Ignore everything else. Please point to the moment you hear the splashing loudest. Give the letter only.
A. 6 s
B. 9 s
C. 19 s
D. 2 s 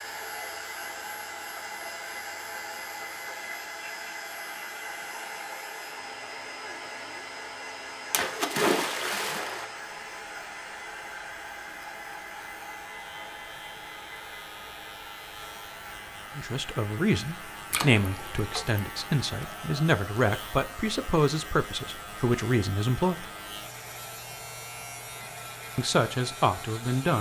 B.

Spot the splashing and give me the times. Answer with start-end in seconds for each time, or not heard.
8.1-9.7, 17.7-18.8.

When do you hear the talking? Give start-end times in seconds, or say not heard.
16.4-23.2, 25.8-27.1.